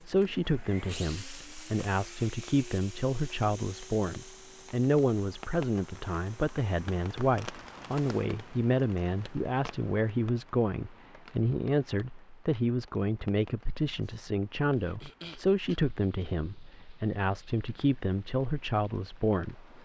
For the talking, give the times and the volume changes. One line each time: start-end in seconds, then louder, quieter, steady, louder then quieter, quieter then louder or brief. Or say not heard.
0.1-19.8 steady.